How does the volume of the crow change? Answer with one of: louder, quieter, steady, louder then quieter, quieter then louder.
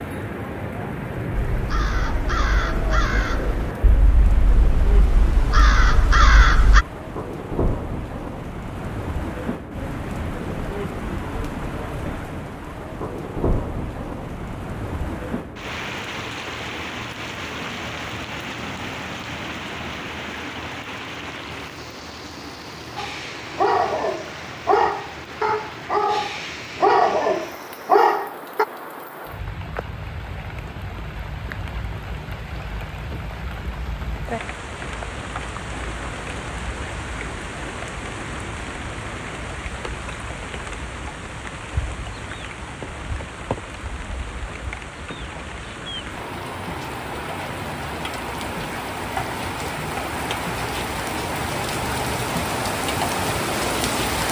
quieter then louder.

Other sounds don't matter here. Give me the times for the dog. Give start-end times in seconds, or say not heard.
22.9-28.6.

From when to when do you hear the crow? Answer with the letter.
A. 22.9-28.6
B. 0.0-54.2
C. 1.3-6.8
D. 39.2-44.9
C.